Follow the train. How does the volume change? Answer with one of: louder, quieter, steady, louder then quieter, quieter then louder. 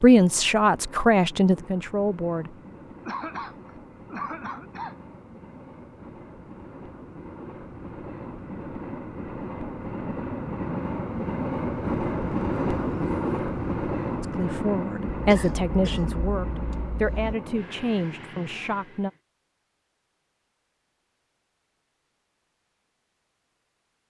louder then quieter.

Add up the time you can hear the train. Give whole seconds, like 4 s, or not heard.
19 s.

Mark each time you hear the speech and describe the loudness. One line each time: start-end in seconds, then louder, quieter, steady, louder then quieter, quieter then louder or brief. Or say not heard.
0.0-2.5 brief
14.2-19.1 quieter.